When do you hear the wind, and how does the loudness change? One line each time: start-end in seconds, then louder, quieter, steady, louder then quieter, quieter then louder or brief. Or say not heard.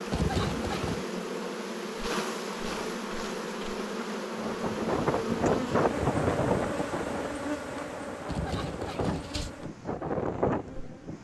4.3-11.2 quieter then louder.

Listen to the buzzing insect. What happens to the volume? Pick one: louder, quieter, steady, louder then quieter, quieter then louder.
quieter.